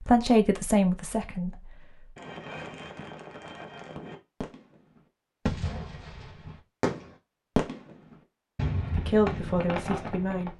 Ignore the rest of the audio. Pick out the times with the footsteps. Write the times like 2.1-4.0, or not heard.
not heard.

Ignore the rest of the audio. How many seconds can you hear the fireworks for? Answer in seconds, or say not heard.
8 s.